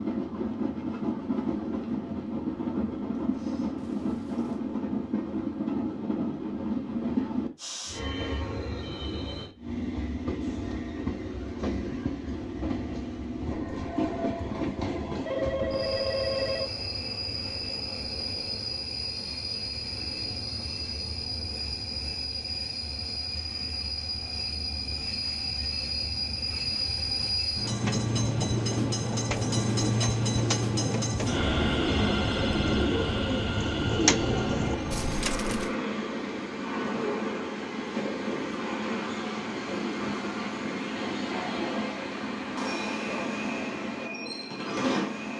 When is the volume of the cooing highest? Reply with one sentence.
The volume of the cooing peaks at 34 seconds.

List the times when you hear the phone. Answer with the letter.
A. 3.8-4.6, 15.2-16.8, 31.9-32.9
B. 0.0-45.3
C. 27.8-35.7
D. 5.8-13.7
A.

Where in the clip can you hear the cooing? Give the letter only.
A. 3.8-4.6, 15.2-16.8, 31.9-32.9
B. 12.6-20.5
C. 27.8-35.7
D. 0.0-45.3
C.